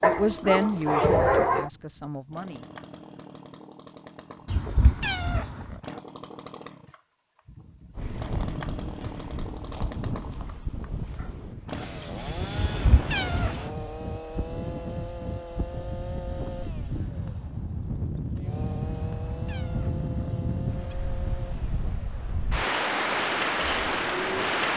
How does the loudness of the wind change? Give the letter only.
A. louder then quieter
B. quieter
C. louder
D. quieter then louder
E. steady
C.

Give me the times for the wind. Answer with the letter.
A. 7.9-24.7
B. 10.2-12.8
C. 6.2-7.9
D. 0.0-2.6
A.